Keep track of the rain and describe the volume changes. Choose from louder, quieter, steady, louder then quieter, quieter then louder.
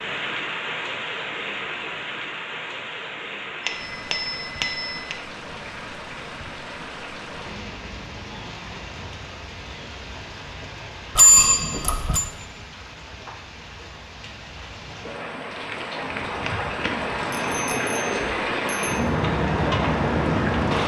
quieter then louder.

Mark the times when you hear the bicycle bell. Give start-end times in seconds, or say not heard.
3.6-5.2, 11.2-12.2, 17.3-18.9.